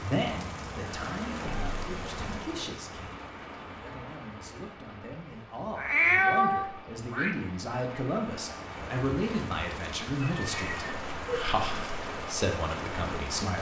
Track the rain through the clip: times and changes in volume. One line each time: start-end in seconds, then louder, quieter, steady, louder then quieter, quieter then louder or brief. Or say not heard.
0.0-13.5 quieter then louder.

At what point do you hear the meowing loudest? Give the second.
6 s.